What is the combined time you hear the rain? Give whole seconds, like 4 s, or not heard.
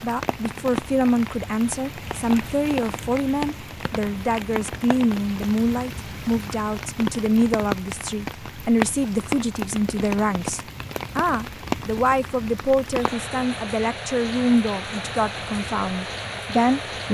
17 s.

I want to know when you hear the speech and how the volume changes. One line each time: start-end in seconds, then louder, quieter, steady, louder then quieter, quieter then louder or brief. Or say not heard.
0.0-17.0 steady.